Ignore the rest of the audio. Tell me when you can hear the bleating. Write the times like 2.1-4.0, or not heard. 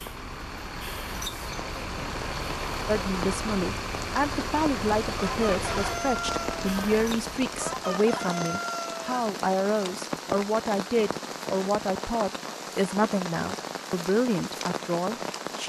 not heard.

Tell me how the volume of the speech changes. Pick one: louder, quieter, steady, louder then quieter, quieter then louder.
steady.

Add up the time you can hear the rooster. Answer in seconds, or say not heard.
4 s.